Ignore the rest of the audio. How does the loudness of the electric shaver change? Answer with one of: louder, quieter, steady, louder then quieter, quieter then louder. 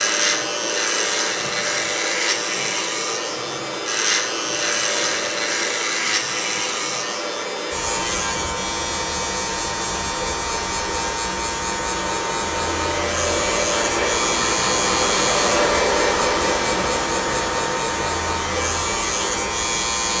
steady.